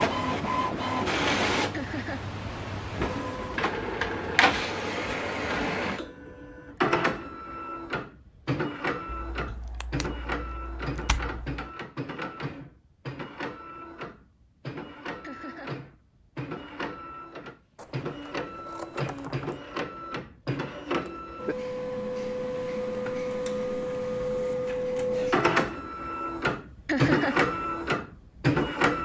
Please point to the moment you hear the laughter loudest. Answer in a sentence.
The loudest moment of the laughter is at 27 seconds.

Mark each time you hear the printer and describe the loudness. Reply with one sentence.
The printer can be heard from 0.0 to 29.0 s, getting quieter then louder.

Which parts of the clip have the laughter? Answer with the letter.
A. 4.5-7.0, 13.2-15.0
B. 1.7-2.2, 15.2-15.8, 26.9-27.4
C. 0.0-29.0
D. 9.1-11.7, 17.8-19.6
B.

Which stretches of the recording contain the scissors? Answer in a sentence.
The scissors can be heard from 9.1 to 11.7 s and from 17.8 to 19.6 s.